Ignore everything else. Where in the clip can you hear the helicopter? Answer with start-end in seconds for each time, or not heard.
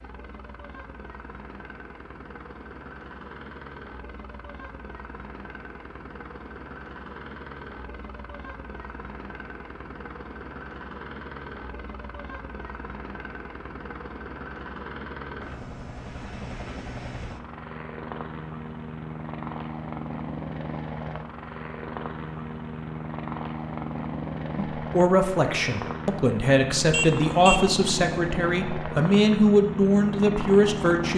0.0-31.1.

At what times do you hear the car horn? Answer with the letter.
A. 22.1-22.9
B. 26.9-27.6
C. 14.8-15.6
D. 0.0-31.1
B.